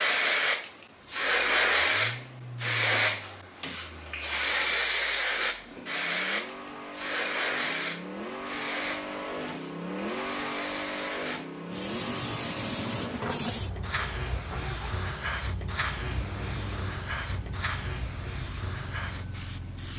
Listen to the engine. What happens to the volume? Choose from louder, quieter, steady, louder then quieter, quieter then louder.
louder then quieter.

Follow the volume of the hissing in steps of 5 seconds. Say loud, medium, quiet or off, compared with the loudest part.
loud, medium, medium, medium.